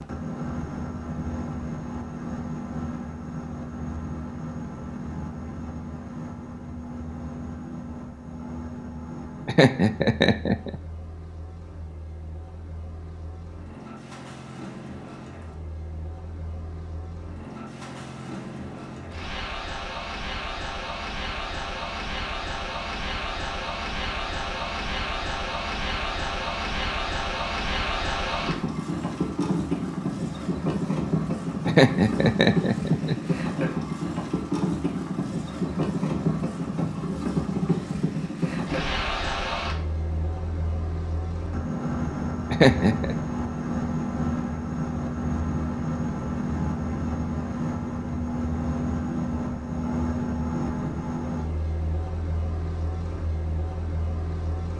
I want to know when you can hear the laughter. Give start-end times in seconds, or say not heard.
9.4-10.8, 31.6-33.4, 42.5-43.1.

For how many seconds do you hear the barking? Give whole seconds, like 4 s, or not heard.
not heard.